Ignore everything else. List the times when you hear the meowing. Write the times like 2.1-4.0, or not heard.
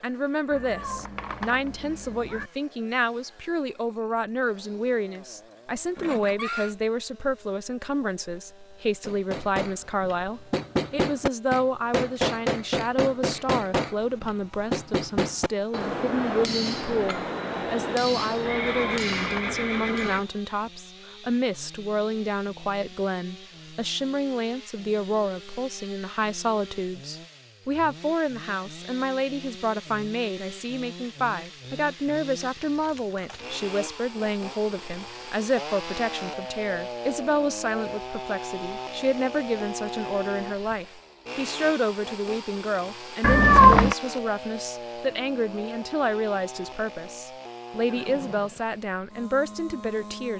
0.5-2.5, 18.5-20.2, 43.2-44.0.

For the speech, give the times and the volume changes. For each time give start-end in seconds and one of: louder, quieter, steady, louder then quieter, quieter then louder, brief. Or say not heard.
0.0-50.3 steady.